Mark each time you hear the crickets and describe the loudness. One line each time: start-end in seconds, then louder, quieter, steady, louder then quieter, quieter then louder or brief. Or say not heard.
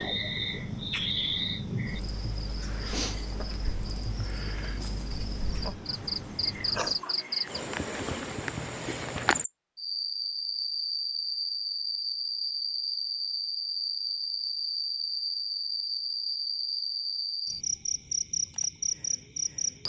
0.0-19.8 steady.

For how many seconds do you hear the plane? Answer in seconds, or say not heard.
7 s.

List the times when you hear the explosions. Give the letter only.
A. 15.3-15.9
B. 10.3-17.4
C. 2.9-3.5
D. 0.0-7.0
C.